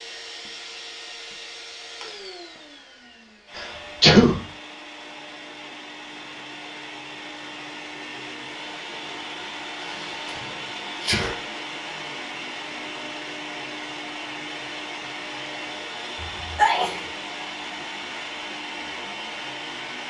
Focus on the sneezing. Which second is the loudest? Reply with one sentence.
The loudest moment of the sneezing is at 4 seconds.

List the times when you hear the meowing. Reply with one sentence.
The meowing can't be heard in this clip.